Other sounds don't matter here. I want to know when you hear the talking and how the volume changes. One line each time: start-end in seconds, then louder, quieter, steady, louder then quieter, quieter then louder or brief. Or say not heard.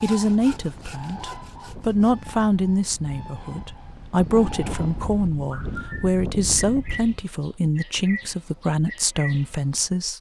0.0-10.1 steady.